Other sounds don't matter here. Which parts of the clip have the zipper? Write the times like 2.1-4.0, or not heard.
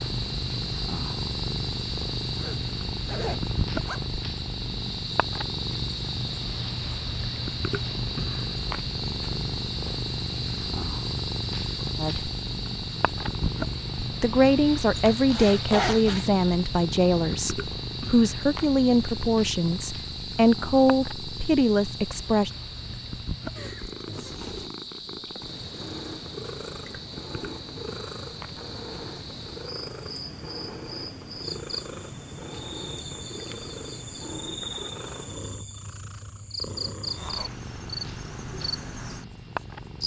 2.4-4.0, 14.9-16.2, 37.0-37.5.